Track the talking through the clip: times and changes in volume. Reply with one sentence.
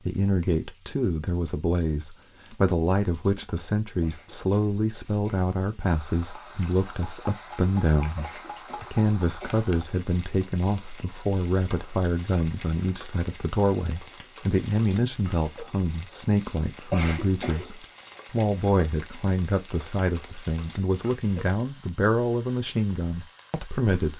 You can hear the talking from 0.1 to 24.1 s, at a steady volume.